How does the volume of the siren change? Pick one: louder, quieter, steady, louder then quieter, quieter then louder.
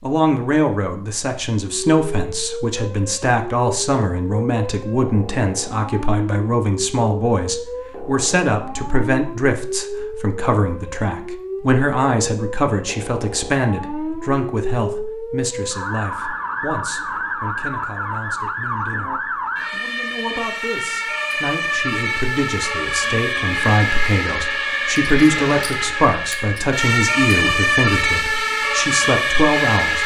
louder.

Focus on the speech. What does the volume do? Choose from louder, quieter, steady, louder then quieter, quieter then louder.
quieter then louder.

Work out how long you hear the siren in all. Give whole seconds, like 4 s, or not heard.
28 s.